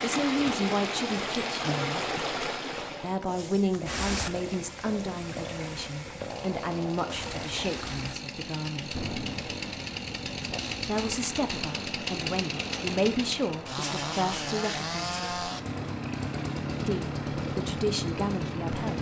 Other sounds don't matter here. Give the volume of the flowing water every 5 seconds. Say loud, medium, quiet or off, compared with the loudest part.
loud, medium, medium, medium.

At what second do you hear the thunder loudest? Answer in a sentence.
The volume of the thunder peaks at 9 seconds.